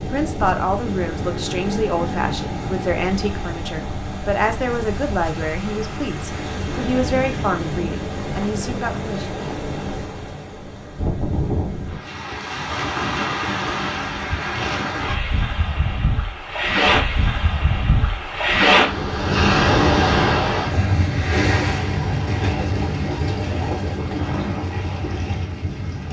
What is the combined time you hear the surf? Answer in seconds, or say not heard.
26 s.